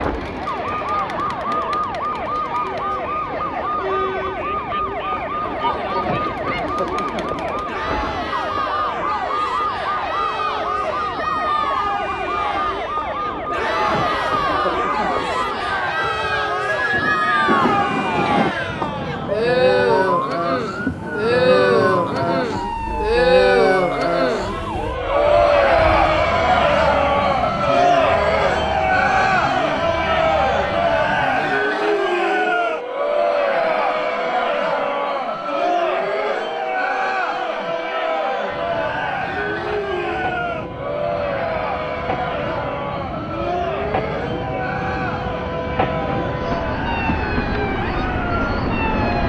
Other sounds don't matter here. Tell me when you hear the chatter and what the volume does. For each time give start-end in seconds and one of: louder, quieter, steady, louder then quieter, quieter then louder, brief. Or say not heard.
0.0-49.2 louder then quieter.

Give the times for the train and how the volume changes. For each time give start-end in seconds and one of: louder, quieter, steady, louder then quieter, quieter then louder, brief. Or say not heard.
16.9-18.6 brief
38.5-49.2 louder.